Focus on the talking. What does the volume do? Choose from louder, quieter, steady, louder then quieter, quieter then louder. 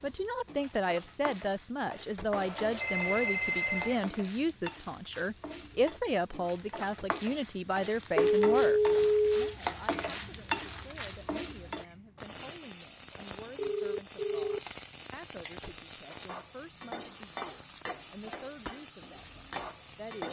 quieter.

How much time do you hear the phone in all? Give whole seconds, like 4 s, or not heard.
4 s.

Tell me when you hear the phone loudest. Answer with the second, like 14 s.
9 s.